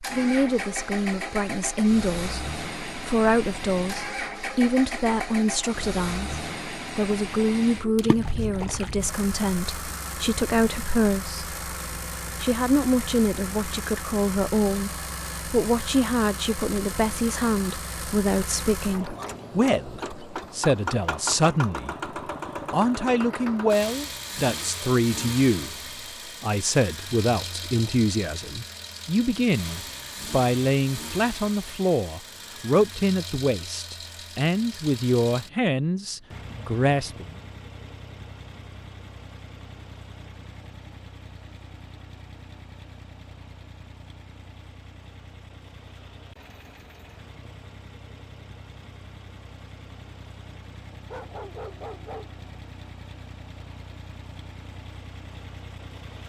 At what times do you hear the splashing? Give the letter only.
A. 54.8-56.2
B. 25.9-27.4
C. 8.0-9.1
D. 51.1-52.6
C.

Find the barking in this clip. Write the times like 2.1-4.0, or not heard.
51.1-52.6.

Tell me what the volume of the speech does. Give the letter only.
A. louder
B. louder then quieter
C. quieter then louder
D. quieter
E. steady
E.